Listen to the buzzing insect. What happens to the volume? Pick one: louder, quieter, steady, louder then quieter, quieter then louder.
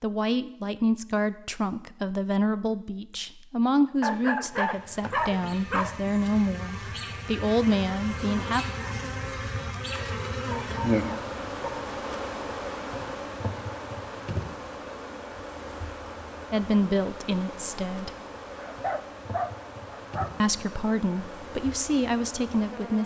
louder then quieter.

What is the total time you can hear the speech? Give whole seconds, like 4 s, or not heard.
13 s.